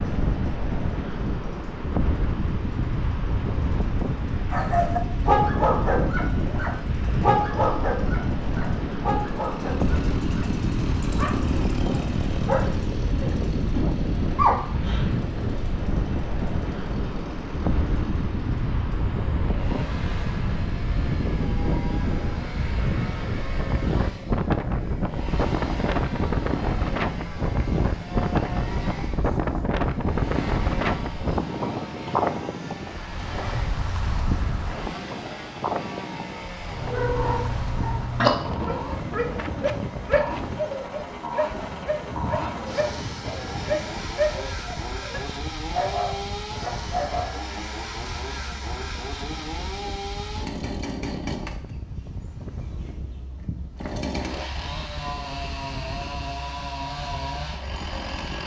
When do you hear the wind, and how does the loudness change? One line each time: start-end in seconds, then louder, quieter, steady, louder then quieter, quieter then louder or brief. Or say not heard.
0.0-58.4 quieter.